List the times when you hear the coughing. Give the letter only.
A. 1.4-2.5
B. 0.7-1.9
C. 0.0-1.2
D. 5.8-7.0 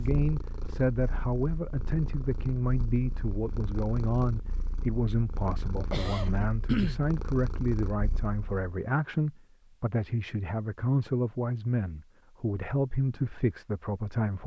D.